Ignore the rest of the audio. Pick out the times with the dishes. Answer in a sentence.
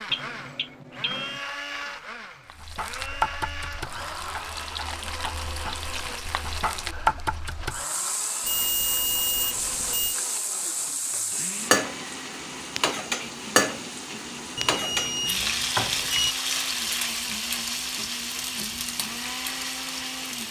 The dishes can't be heard in this clip.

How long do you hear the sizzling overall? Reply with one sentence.
You can hear the sizzling for 18 seconds altogether.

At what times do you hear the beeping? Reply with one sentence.
You can hear the beeping from 0.1 to 1.4 s, from 8.4 to 10.2 s and from 14.6 to 16.4 s.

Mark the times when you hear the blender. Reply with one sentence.
You can hear the blender from 0.0 to 20.4 s.